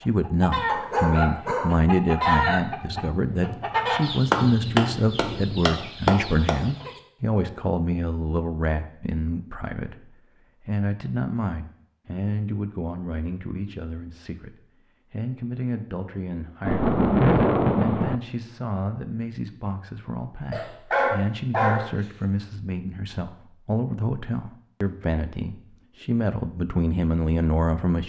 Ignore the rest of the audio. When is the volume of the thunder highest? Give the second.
17 s.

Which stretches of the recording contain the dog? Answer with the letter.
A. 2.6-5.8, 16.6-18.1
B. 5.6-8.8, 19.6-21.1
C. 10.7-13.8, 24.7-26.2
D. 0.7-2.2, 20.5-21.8
D.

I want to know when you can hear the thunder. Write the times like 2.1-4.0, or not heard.
2.6-5.8, 16.6-18.1.